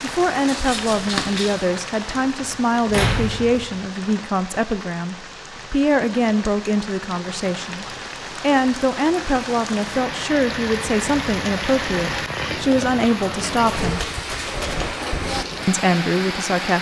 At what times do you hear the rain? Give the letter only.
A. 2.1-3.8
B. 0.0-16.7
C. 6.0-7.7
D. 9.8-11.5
B.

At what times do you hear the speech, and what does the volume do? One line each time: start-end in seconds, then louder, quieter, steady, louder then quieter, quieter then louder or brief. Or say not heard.
0.0-14.0 steady
15.7-16.7 brief.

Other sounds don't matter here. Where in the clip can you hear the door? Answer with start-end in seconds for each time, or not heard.
2.1-3.8.